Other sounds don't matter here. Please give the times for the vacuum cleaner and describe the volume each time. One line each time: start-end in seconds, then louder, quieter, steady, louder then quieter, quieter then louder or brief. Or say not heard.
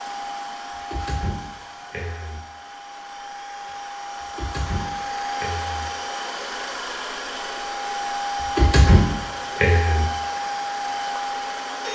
0.0-11.9 louder.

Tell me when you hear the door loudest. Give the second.
9 s.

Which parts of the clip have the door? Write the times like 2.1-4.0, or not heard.
0.9-2.4, 4.2-5.8, 8.4-10.1.